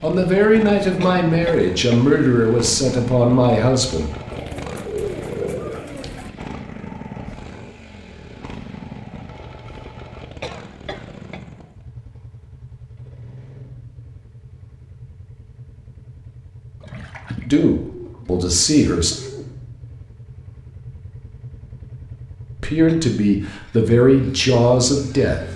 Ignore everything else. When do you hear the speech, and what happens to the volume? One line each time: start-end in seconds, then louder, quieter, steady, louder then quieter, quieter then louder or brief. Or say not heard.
0.0-4.1 steady
17.4-19.1 brief
22.6-25.4 brief.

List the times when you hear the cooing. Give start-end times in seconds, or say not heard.
4.3-6.3, 16.8-19.5.